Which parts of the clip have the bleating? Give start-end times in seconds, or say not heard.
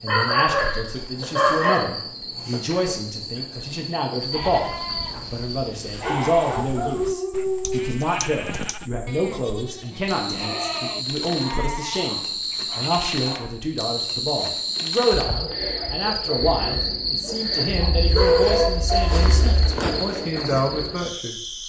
4.3-13.2.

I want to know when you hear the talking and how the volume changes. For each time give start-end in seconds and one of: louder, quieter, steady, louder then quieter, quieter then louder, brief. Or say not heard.
0.0-21.4 steady.